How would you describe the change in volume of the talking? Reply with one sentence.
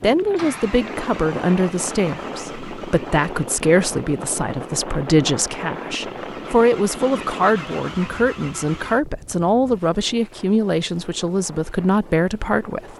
The volume of the talking stays about the same.